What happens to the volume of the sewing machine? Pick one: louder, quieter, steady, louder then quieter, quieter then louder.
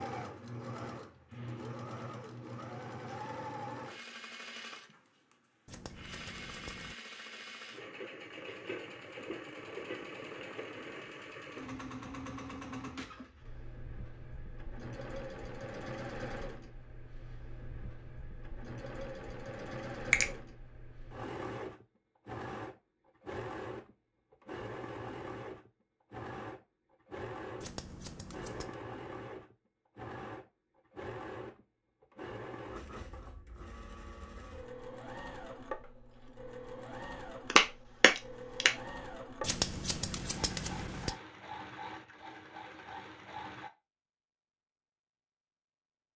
steady.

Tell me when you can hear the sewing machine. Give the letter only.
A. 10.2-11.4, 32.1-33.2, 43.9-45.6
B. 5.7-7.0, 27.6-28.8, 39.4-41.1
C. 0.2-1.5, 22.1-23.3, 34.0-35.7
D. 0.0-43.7
D.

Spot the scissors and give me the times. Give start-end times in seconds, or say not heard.
5.7-7.0, 27.6-28.8, 39.4-41.1.